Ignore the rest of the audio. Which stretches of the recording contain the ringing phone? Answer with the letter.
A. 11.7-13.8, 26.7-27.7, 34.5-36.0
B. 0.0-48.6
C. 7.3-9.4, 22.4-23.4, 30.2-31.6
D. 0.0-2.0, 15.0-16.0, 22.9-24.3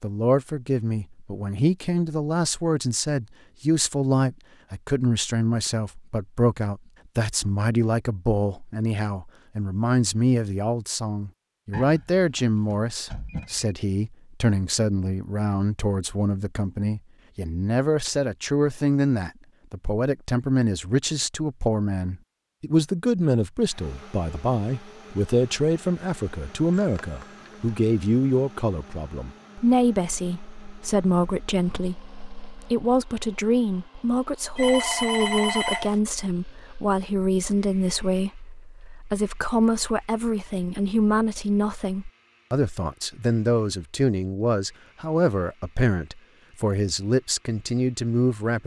A.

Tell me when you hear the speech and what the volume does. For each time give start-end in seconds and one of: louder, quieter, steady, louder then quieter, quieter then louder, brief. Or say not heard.
0.0-48.6 steady.